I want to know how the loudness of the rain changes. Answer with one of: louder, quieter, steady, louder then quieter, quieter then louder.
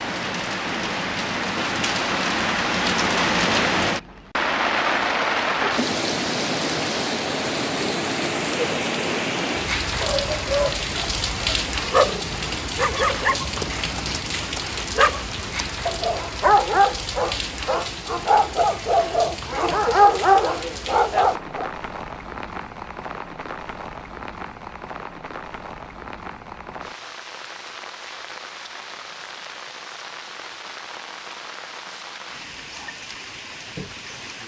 quieter.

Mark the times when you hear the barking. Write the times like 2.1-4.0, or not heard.
10.0-21.6.